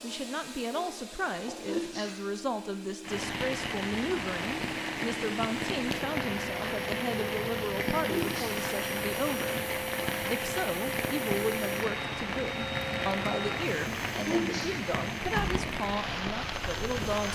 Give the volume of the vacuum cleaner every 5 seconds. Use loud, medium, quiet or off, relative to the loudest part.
medium, loud, loud, loud.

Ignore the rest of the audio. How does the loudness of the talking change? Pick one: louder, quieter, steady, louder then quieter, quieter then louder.
steady.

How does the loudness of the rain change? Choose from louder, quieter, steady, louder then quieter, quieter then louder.
steady.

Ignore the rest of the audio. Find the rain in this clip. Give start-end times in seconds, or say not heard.
3.0-17.3.